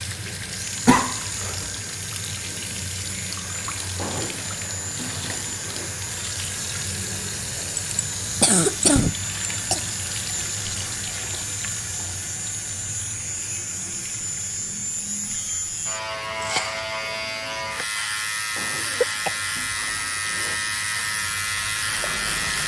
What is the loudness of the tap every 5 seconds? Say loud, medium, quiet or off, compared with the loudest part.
loud, loud, loud, quiet, medium.